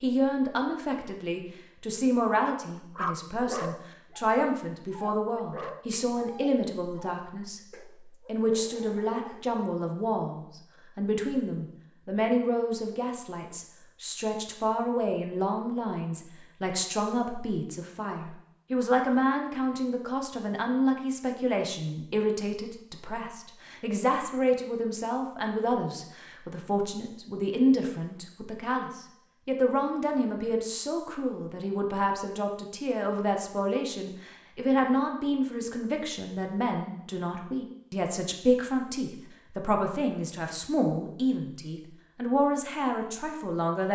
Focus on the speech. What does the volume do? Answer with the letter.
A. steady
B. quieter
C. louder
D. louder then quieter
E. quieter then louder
A.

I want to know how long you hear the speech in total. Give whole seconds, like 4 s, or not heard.
43 s.